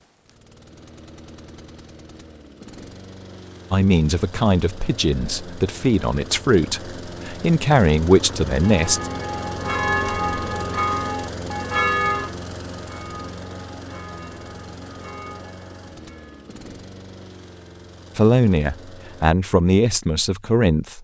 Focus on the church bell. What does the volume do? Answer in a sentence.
The loudness of the church bell goes down.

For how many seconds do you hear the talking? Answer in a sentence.
The talking can be heard for 8 seconds in total.